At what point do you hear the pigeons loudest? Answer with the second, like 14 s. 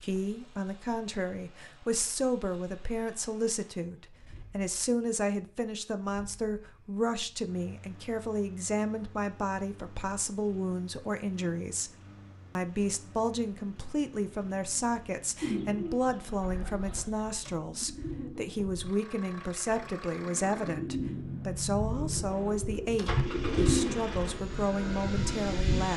24 s.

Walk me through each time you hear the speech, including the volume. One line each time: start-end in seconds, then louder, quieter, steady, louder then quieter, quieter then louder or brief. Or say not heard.
0.0-11.9 steady
12.6-25.9 steady.